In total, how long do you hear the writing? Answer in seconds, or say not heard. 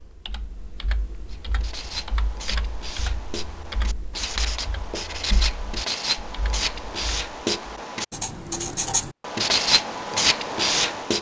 10 s.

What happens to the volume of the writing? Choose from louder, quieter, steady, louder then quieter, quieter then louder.
louder.